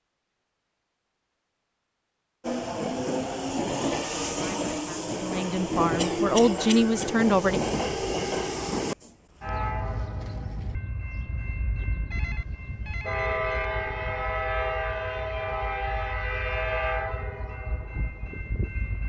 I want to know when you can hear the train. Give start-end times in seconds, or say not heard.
2.4-19.0.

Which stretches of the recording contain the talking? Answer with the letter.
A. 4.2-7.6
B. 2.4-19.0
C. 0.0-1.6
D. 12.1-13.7
A.